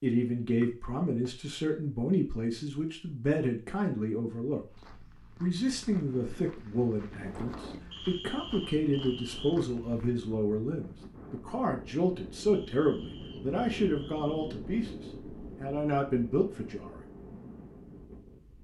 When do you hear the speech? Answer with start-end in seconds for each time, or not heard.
0.0-4.6, 5.4-15.0, 15.6-17.0.